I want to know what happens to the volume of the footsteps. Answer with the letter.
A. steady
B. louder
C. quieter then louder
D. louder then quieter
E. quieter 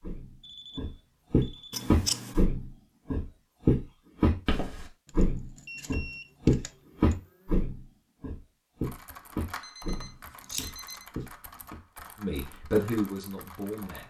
E.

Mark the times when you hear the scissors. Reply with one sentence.
You can hear the scissors from 1.7 to 2.5 s, from 5.0 to 7.3 s and from 10.4 to 11.0 s.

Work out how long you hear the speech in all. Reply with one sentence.
The speech can be heard for 2 seconds in total.